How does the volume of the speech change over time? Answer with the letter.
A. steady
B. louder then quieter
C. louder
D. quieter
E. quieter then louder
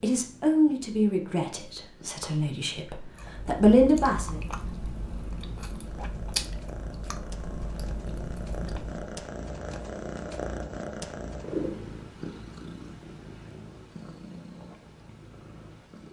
E.